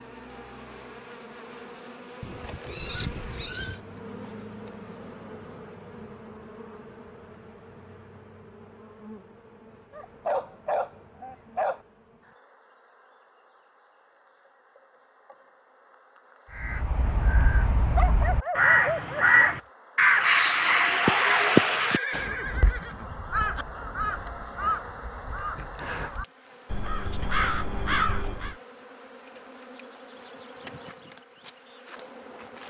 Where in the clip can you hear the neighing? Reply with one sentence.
You can hear the neighing from 2.2 to 3.8 s and from 21.8 to 23.6 s.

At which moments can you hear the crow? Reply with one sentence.
The crow can be heard from 16.6 to 28.6 s.